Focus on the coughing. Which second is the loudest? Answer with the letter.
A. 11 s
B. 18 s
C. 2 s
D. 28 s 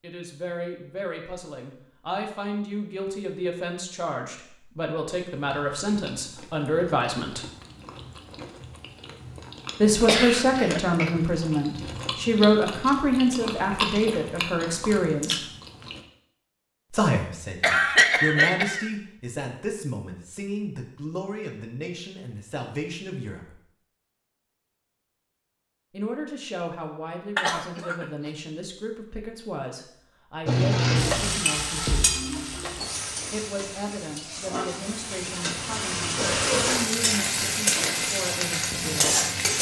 B.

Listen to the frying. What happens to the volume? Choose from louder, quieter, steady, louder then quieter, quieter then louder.
quieter then louder.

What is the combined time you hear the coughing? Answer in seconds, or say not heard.
3 s.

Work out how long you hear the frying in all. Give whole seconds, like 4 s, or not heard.
9 s.